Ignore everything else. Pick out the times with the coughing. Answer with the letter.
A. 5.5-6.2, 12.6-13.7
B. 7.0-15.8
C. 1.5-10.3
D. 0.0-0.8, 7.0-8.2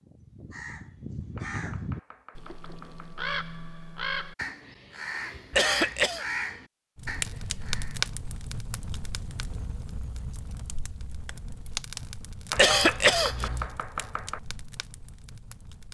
A.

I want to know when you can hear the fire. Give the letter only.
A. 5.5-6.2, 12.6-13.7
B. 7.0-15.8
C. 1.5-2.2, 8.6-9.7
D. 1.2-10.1
B.